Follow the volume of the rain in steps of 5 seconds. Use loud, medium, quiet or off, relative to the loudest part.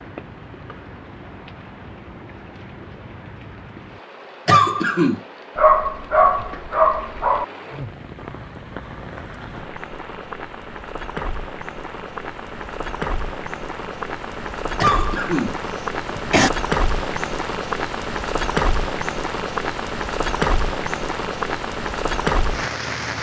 quiet, quiet, medium, loud, loud.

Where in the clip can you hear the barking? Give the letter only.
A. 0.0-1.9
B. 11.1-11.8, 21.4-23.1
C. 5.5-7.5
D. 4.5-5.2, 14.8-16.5
C.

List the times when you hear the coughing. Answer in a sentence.
The coughing can be heard from 4.5 to 5.2 s and from 14.8 to 16.5 s.